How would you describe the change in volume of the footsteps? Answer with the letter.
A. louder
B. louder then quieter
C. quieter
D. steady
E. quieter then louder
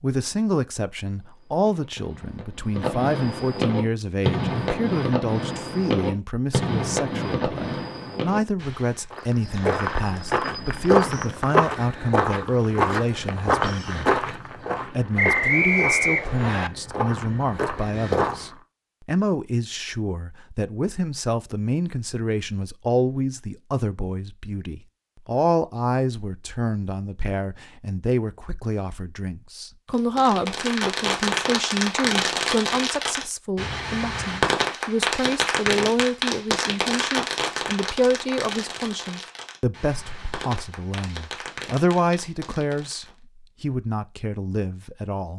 C.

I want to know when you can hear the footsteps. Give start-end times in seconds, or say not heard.
9.1-18.5.